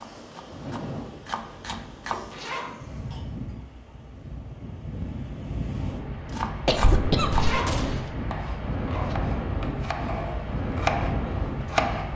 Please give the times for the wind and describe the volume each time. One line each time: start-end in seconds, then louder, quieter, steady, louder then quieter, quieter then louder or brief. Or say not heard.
0.0-12.1 louder.